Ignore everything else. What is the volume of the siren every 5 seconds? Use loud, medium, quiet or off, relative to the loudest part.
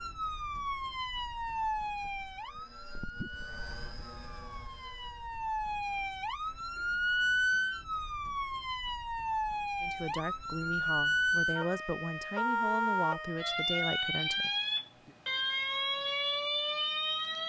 medium, loud, loud, loud.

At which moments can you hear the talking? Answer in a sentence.
The talking can be heard from 9.8 to 15.2 s.